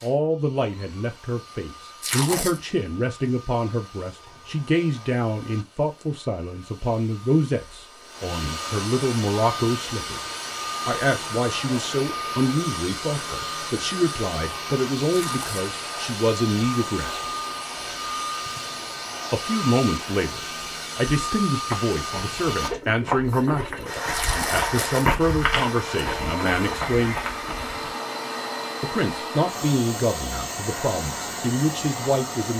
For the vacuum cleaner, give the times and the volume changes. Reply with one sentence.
The vacuum cleaner can be heard from 0.0 to 32.5 s, getting louder.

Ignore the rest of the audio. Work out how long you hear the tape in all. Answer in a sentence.
The tape can be heard for 2 seconds in total.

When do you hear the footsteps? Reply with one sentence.
You can hear the footsteps from 21.7 to 27.9 s.